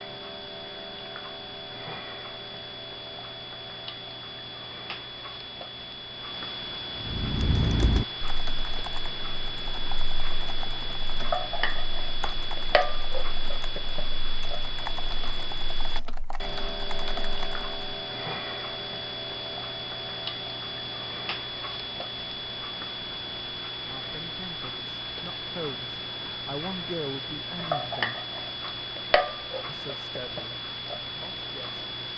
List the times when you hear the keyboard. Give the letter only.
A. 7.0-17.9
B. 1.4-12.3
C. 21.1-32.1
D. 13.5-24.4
A.